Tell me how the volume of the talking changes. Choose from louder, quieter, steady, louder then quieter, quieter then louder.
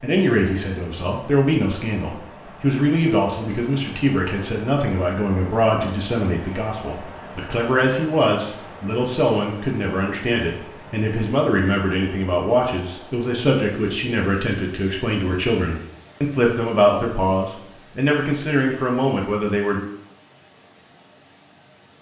steady.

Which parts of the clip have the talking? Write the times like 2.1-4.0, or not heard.
0.0-19.8.